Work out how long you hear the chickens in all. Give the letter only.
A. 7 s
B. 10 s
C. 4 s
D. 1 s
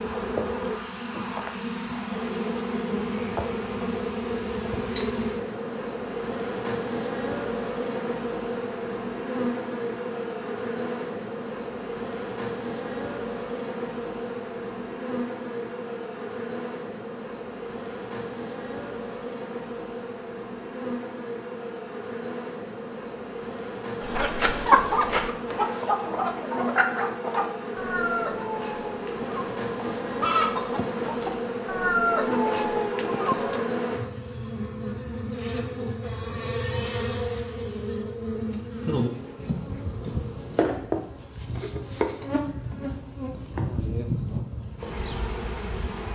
B.